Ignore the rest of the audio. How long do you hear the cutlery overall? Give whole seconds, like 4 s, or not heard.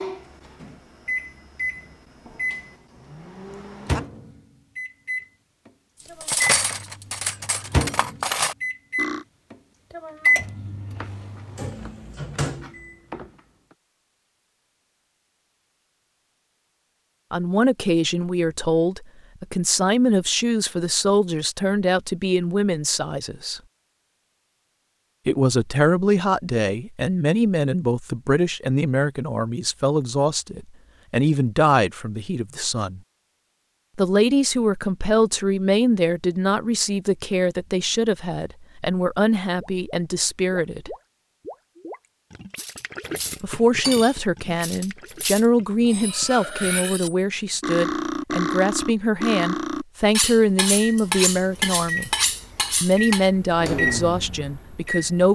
14 s.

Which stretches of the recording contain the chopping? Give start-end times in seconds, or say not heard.
10.9-13.8.